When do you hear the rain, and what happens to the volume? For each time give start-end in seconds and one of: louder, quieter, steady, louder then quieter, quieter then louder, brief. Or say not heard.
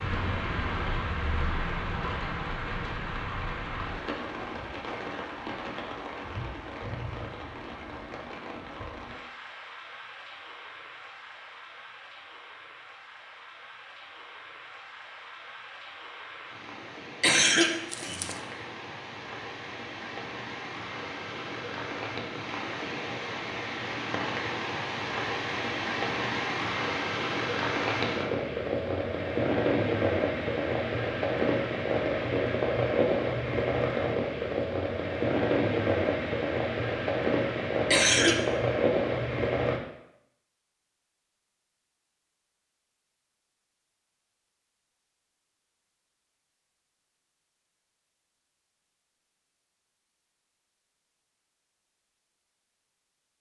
0.0-39.8 quieter then louder.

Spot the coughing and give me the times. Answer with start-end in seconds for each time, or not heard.
17.2-18.4, 37.9-38.4.